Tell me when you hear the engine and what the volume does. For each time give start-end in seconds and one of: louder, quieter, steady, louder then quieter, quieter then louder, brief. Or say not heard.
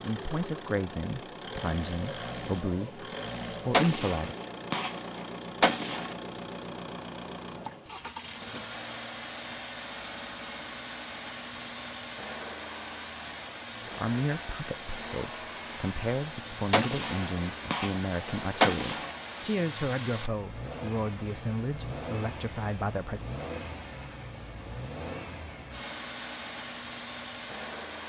0.0-28.0 steady.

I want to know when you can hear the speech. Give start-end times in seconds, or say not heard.
0.0-4.3, 13.9-23.2.